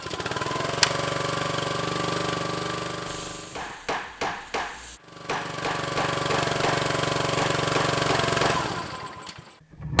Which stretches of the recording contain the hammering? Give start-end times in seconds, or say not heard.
3.5-8.7.